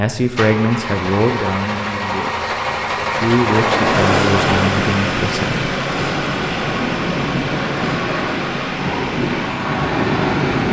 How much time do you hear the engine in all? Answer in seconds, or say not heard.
10 s.